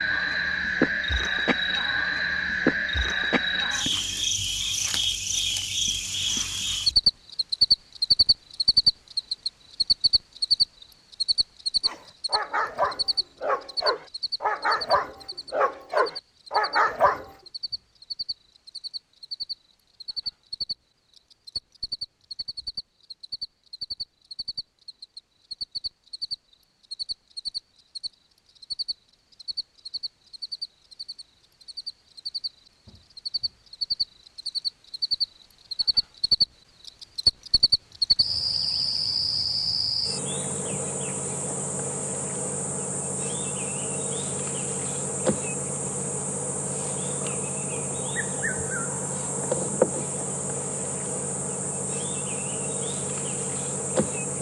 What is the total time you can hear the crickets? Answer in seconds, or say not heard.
54 s.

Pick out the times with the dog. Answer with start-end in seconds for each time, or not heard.
11.8-17.3.